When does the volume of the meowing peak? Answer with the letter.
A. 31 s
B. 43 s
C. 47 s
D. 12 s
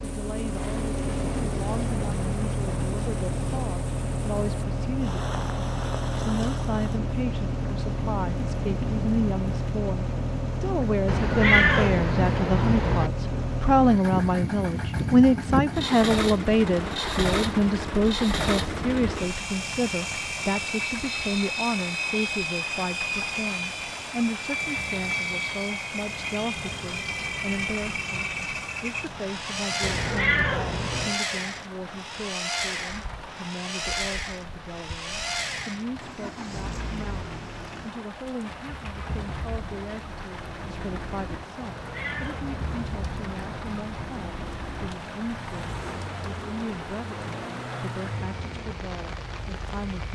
D.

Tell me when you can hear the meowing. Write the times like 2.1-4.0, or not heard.
11.1-13.1, 29.8-31.1, 41.6-43.4.